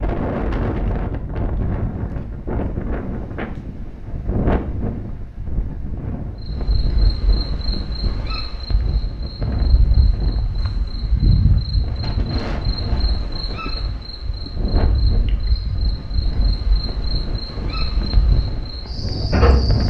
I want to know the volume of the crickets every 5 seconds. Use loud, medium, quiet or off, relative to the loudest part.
off, medium, loud, loud.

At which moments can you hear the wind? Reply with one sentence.
You can hear the wind from 0.0 to 19.8 s.